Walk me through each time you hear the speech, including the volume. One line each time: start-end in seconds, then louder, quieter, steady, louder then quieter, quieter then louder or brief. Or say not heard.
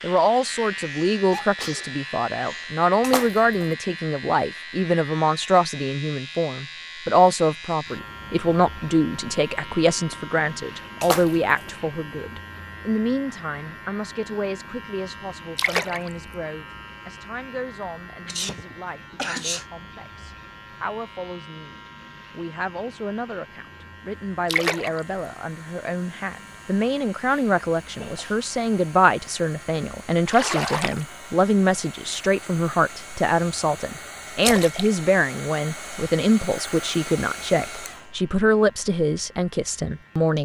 0.0-40.4 quieter then louder.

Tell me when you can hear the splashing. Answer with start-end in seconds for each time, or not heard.
3.0-3.8, 11.0-11.7, 15.6-16.1, 24.4-25.0, 30.2-31.1, 34.4-34.9.